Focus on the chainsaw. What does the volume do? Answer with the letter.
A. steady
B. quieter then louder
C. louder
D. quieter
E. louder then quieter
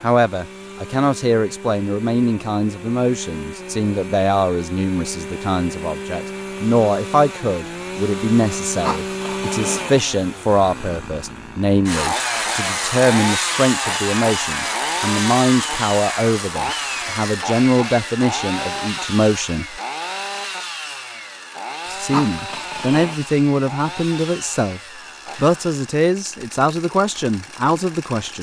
E.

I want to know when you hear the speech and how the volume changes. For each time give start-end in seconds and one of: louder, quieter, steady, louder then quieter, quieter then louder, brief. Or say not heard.
0.0-19.8 steady
21.9-28.3 steady.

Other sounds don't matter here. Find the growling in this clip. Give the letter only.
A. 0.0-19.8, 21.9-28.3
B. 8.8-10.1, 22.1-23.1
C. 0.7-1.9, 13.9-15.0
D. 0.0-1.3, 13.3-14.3
B.